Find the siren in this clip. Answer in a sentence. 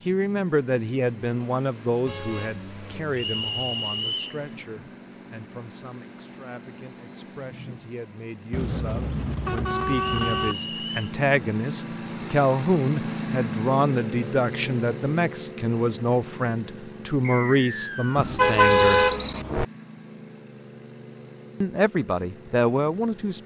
The siren can't be heard in this clip.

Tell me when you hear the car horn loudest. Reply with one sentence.
The volume of the car horn peaks at 19 seconds.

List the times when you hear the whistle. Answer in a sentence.
You can hear the whistle from 3.1 to 4.3 s, from 10.1 to 11.1 s and from 17.2 to 18.4 s.